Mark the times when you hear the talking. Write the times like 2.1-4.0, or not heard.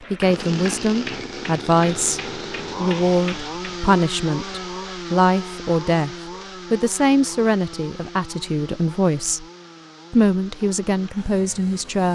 0.1-9.4, 10.1-12.1.